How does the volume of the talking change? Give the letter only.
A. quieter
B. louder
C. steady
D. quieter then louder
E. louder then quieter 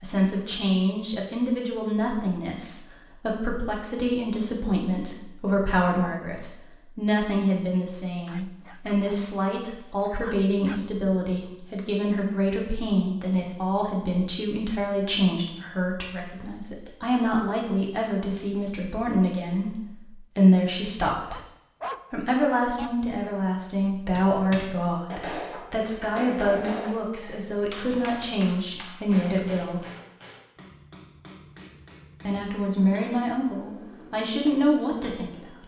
C.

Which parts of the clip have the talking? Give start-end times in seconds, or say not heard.
0.0-21.4, 22.1-29.8, 32.2-35.6.